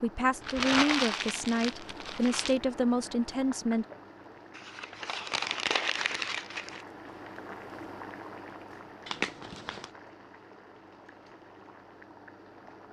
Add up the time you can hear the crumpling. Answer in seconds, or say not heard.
5 s.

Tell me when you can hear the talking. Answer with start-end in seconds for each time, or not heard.
0.0-3.9.